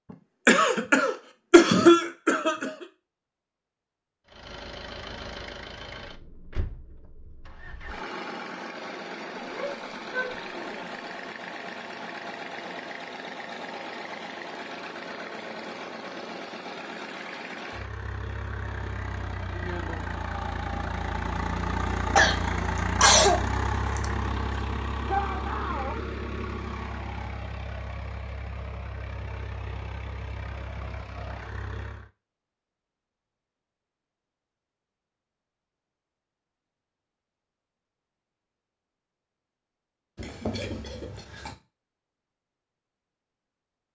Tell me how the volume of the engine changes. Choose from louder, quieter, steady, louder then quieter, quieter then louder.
louder then quieter.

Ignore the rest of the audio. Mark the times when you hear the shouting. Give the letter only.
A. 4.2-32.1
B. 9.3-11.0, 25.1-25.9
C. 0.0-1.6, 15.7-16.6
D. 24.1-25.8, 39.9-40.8
B.